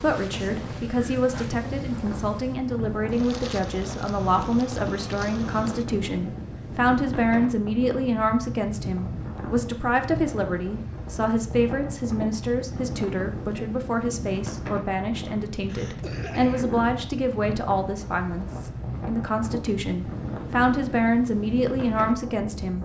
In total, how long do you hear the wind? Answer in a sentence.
You can hear the wind for 23 seconds altogether.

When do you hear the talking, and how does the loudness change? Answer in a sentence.
The talking can be heard from 0.0 to 22.8 s, at a steady volume.